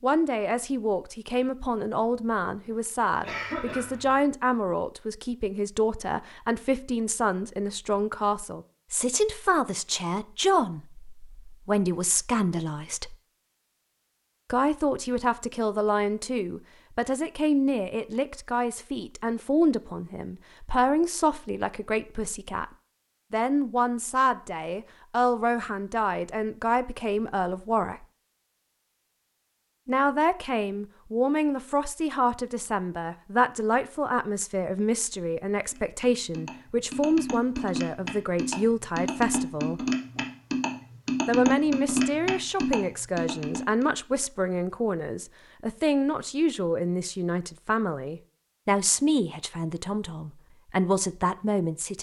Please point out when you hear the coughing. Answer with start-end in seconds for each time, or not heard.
2.7-4.2.